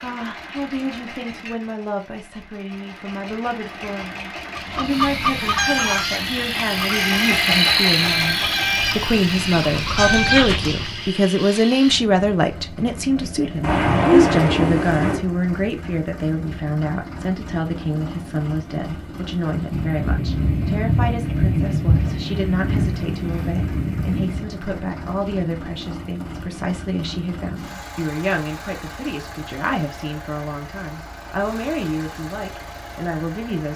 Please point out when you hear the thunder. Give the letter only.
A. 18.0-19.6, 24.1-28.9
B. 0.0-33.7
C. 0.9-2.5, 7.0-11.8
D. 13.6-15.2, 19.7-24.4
D.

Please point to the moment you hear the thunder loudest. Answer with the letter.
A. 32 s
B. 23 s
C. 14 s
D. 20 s
C.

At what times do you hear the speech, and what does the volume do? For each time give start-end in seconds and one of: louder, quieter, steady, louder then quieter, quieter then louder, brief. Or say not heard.
0.0-33.7 louder then quieter.